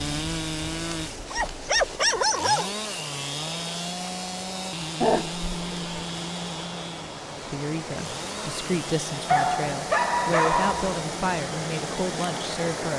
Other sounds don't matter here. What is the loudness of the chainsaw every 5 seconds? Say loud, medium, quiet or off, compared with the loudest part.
loud, loud, medium.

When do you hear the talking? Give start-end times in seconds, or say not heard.
7.5-12.9.